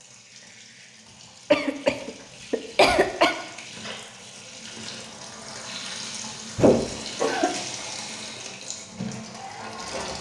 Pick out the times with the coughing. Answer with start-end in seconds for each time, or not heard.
1.5-3.4, 6.5-7.5.